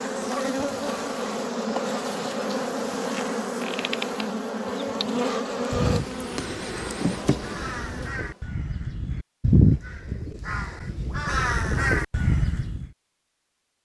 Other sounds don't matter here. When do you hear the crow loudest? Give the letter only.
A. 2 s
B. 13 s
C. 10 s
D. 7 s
C.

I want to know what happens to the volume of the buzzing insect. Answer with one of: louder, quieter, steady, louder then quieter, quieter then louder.
steady.